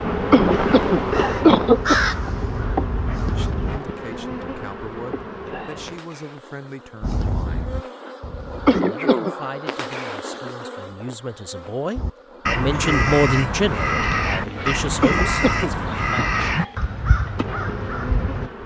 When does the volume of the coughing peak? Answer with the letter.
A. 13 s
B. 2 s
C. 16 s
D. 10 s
B.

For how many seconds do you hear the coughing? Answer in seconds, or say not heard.
3 s.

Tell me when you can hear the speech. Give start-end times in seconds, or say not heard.
3.2-7.7, 8.8-16.4.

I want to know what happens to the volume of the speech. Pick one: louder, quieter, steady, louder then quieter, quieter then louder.
louder then quieter.